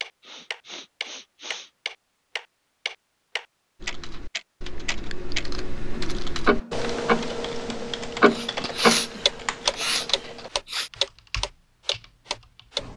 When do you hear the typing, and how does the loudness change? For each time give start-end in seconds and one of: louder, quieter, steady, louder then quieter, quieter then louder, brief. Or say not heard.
3.8-12.9 louder then quieter.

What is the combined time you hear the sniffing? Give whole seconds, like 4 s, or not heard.
4 s.